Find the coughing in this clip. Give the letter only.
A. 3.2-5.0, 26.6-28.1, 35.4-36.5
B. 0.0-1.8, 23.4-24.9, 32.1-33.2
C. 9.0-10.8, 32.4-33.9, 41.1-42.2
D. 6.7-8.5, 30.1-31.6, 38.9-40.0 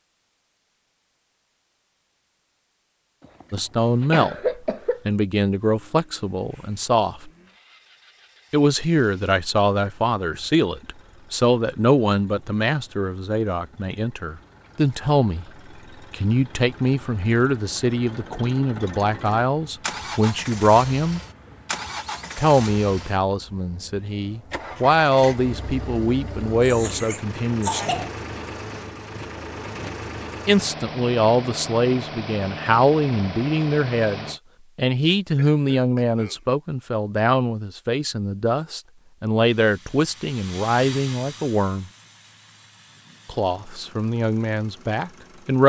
A.